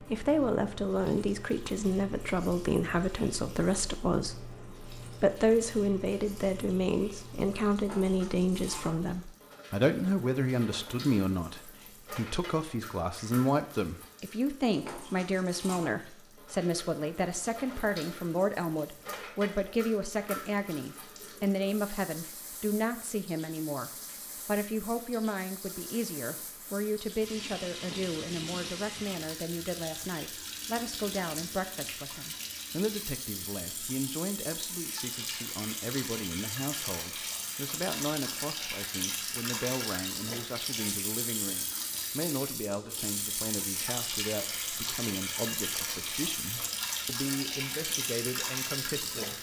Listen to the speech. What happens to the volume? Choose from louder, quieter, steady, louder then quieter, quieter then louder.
quieter.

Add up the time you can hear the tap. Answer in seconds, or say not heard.
49 s.